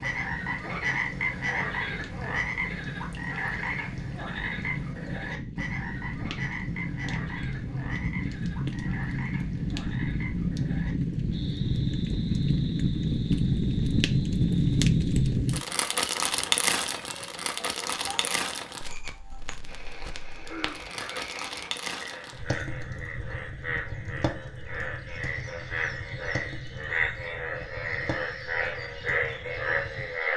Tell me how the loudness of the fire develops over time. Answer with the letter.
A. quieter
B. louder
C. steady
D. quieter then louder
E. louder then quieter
E.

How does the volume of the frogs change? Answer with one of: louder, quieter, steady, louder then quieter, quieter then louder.
quieter then louder.